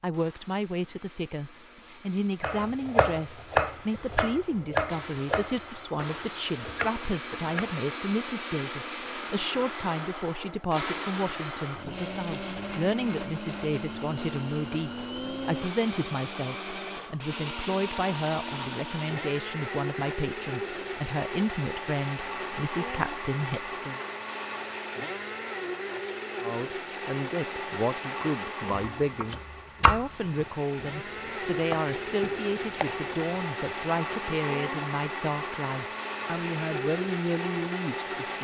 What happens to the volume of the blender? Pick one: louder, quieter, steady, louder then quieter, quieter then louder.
louder.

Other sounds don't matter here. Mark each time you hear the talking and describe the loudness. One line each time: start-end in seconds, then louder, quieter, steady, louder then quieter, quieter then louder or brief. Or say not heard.
0.0-24.0 steady
26.4-38.3 steady.